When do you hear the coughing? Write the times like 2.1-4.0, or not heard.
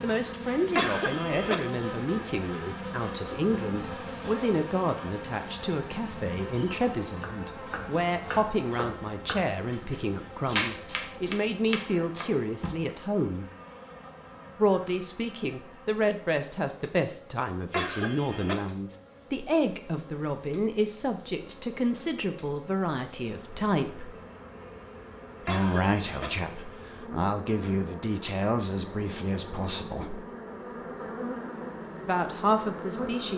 0.8-1.6, 17.7-18.6, 25.4-26.3.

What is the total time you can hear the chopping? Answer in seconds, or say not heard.
6 s.